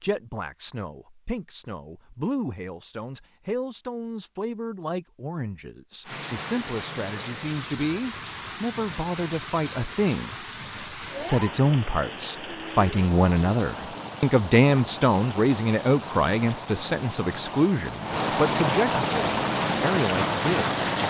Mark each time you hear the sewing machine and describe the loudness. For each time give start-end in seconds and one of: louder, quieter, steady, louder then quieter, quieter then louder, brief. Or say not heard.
not heard.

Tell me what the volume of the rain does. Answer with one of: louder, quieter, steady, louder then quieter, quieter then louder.
louder.